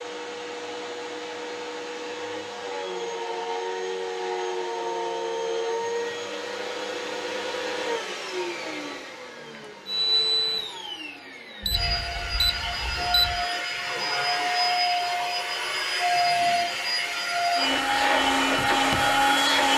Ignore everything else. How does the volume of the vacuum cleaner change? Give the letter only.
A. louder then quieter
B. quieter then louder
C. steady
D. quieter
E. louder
E.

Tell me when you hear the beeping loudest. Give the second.
13 s.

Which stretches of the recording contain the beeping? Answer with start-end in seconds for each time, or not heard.
11.6-13.4.